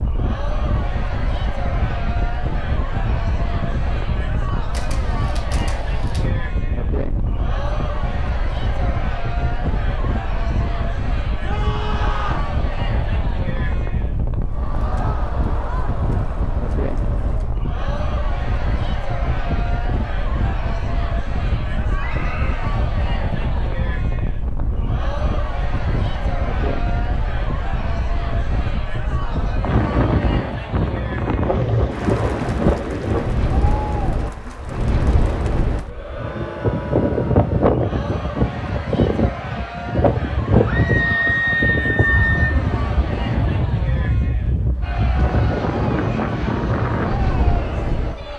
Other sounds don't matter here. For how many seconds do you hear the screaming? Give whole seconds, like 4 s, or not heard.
4 s.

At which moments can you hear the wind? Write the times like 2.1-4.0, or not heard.
0.0-48.3.